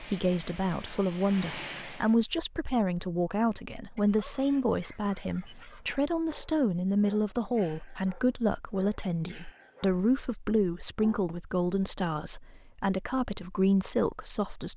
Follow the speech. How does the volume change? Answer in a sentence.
The loudness of the speech stays about the same.